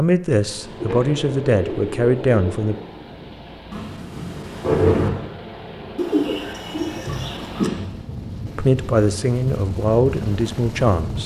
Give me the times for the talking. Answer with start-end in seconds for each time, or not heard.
0.0-2.8, 8.6-11.2.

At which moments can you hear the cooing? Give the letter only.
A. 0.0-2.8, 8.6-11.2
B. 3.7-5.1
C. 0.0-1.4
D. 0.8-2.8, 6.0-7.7
D.